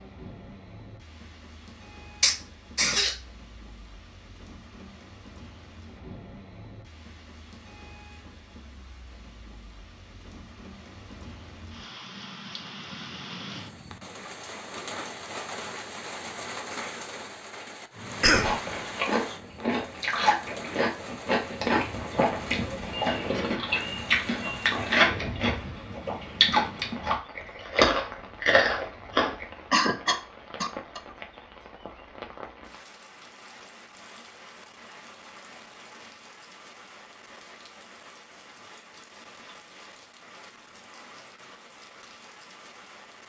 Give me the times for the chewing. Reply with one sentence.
The chewing can be heard from 18.2 to 29.4 s.